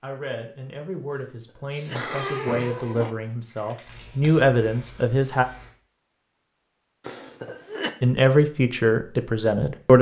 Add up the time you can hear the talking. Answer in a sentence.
The talking can be heard for 7 seconds in total.